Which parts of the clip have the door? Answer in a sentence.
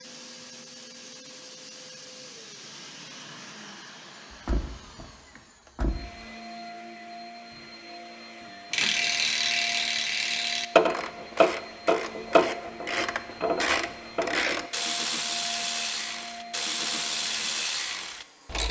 You can hear the door from 4.3 to 6.0 s.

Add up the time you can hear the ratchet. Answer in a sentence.
The ratchet can be heard for 10 seconds in total.